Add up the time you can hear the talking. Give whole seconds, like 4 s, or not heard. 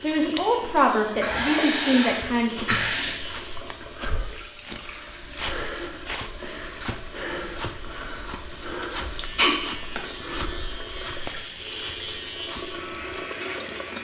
3 s.